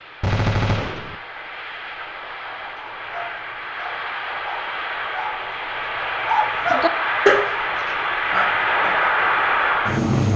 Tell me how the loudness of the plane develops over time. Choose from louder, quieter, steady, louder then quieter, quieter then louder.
louder.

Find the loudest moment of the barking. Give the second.
7 s.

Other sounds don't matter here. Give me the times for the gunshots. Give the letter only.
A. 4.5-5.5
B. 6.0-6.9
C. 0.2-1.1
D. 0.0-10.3
C.